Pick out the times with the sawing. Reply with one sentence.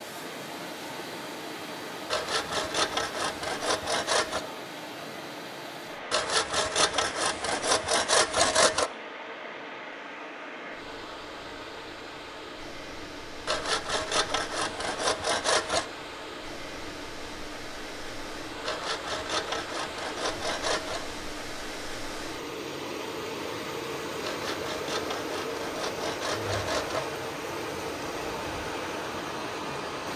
The sawing can be heard from 2.1 to 4.5 s, from 6.1 to 8.9 s, from 13.4 to 15.8 s, from 18.6 to 21.1 s and from 24.2 to 27.1 s.